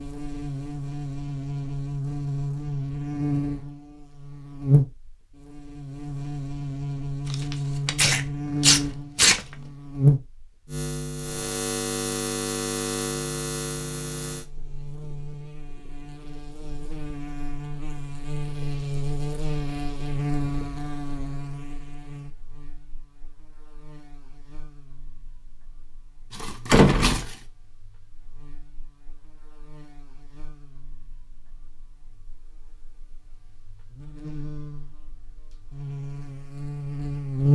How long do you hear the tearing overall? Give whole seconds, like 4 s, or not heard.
3 s.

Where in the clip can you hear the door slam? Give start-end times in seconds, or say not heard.
26.7-27.2.